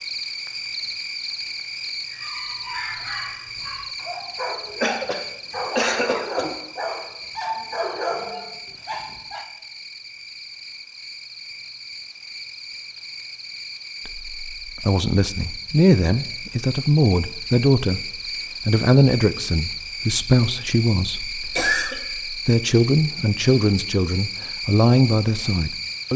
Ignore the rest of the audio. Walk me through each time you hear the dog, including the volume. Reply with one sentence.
You can hear the dog from 2.0 to 9.4 s, getting louder.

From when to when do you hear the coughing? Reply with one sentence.
You can hear the coughing from 4.8 to 6.5 s and from 21.4 to 21.9 s.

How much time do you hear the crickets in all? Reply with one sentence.
The crickets can be heard for 26 seconds in total.